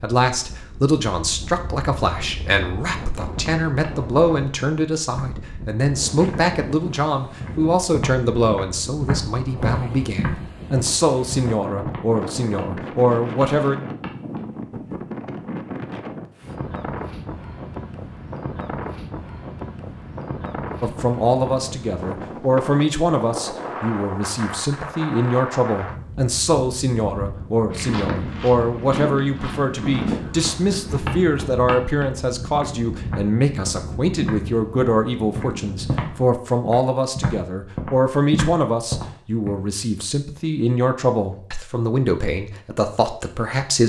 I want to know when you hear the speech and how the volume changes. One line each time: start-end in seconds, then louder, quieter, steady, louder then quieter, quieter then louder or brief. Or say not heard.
0.0-13.8 steady
20.8-43.8 steady.